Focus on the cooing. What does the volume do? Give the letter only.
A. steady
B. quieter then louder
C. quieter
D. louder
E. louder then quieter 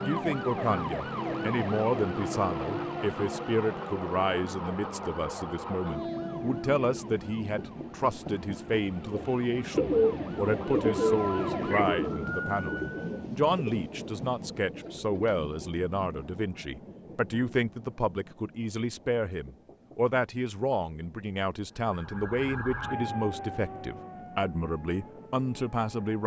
C.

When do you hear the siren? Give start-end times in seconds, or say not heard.
0.0-13.0, 21.7-26.2.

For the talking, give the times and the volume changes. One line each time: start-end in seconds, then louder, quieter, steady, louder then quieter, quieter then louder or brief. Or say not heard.
0.0-26.2 steady.